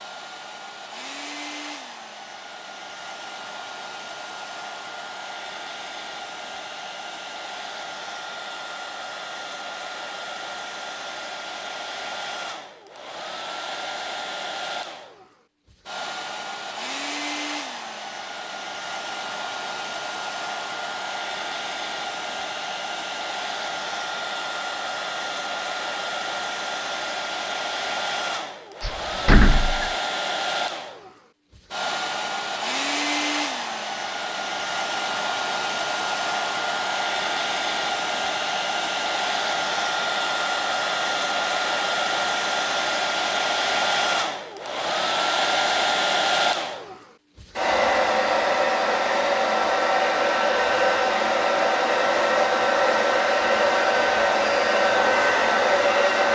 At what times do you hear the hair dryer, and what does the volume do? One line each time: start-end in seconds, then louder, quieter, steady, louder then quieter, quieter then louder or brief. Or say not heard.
0.0-56.3 louder.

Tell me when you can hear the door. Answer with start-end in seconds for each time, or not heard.
28.8-29.9.